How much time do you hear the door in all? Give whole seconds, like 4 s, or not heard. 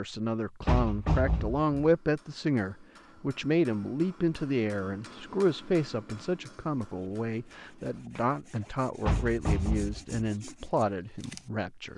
2 s.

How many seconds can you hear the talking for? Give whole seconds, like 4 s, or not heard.
12 s.